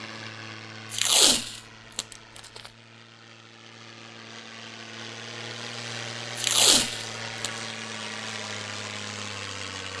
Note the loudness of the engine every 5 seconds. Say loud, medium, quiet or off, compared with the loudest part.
medium, loud.